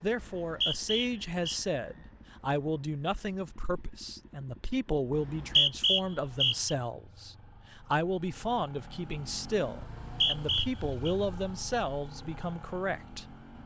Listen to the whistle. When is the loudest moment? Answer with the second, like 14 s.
6 s.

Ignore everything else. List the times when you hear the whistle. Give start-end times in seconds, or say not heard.
0.2-1.6, 5.2-6.8, 9.8-11.2.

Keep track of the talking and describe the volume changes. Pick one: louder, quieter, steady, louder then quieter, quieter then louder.
steady.